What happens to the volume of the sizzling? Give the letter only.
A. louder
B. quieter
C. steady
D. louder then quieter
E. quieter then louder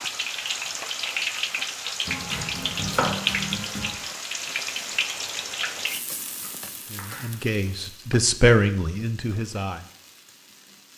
B.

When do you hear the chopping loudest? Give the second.
3 s.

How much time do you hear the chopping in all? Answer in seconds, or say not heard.
3 s.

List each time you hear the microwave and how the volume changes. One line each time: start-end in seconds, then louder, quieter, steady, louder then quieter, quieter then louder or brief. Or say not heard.
not heard.